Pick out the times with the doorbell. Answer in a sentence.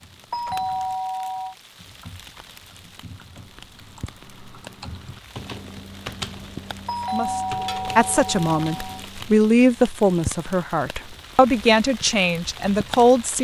You can hear the doorbell from 0.3 to 1.6 s and from 6.8 to 9.1 s.